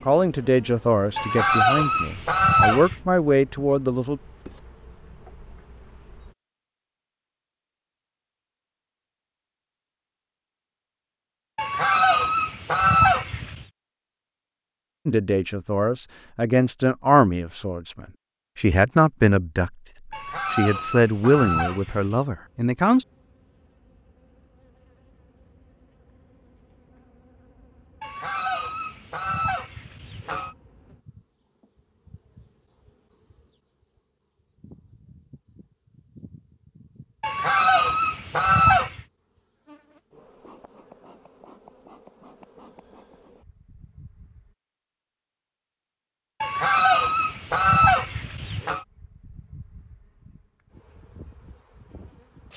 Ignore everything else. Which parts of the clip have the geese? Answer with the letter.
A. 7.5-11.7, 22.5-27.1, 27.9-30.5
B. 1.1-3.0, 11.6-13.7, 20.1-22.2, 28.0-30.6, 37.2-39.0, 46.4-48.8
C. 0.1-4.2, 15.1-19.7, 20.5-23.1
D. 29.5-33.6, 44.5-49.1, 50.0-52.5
B.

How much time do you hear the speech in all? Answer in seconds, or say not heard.
11 s.